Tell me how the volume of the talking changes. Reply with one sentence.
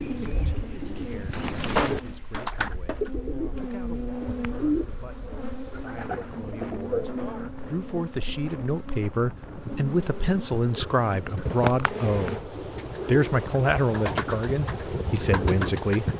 The volume of the talking goes up.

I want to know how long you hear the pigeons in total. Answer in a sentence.
The pigeons can be heard for 13 seconds in total.